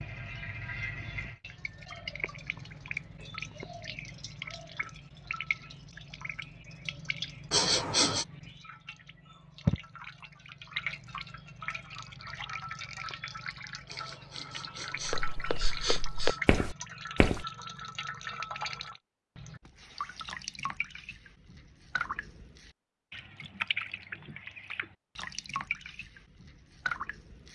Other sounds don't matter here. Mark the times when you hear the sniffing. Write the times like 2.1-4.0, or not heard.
7.5-8.2, 13.9-16.4.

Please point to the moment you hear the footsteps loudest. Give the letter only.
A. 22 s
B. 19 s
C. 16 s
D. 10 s
C.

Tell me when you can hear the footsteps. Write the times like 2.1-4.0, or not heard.
15.1-17.4.